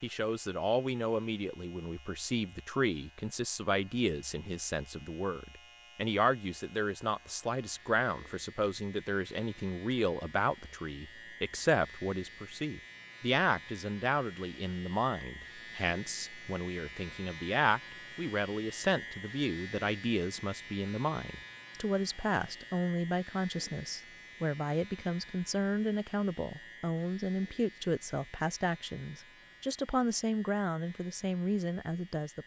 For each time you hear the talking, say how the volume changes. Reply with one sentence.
The talking can be heard from 0.0 to 32.4 s, at a steady volume.